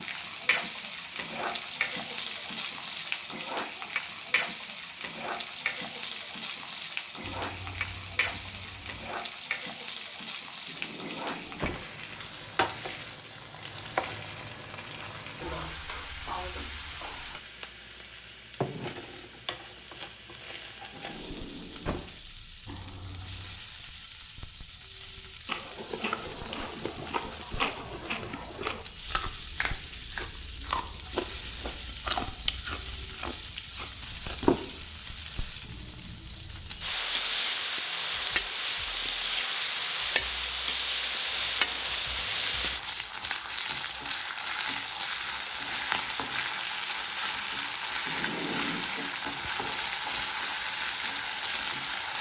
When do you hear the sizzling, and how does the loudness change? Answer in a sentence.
You can hear the sizzling from 0.0 to 52.1 s, getting quieter then louder.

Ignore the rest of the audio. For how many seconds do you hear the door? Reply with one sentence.
You can hear the door for 3 seconds altogether.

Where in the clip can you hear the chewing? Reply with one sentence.
You can hear the chewing from 25.4 to 34.6 s.